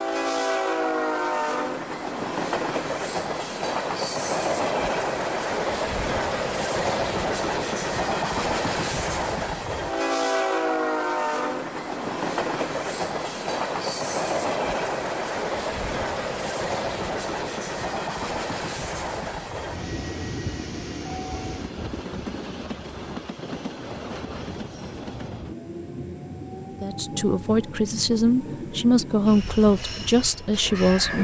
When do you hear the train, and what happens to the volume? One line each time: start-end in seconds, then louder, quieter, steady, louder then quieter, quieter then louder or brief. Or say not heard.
0.0-31.2 quieter.